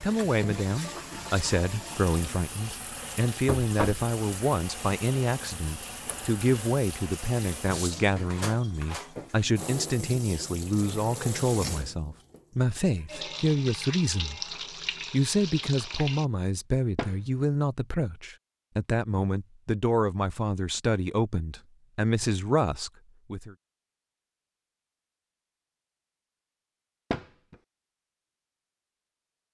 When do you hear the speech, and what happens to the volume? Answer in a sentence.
The speech can be heard from 0.0 to 14.4 s, at a steady volume; and from 15.1 to 23.6 s, at a steady volume.